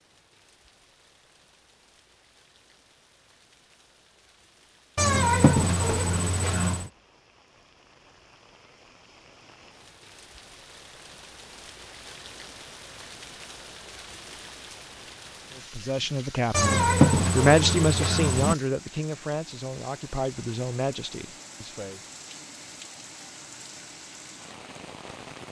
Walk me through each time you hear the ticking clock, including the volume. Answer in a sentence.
You can't hear the ticking clock here.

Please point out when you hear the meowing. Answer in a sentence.
The meowing can be heard from 5.0 to 6.9 s and from 16.5 to 18.6 s.